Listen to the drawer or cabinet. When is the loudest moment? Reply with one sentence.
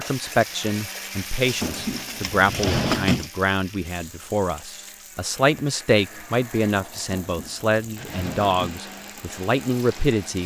The loudest moment of the drawer or cabinet is at 3 seconds.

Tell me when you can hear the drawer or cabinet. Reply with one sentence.
The drawer or cabinet can be heard from 1.4 to 3.3 s and from 7.2 to 8.8 s.